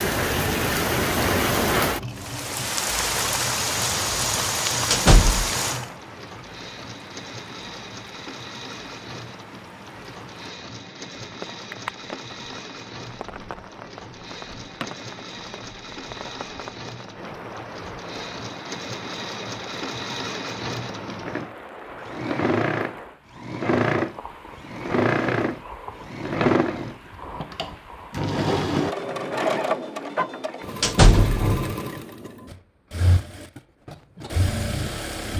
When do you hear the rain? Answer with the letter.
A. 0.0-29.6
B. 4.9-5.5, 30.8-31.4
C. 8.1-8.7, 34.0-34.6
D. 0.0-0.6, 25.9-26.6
A.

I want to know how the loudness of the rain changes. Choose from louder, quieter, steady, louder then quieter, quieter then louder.
quieter.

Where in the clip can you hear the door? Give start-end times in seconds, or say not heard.
4.9-5.5, 30.8-31.4.